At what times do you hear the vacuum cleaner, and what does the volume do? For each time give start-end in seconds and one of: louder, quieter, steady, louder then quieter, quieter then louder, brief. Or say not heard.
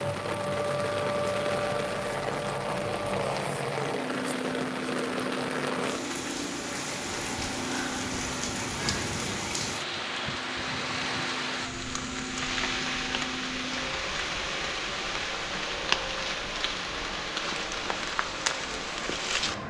0.0-19.6 quieter.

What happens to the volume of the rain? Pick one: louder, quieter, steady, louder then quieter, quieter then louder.
steady.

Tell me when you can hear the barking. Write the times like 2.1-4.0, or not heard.
not heard.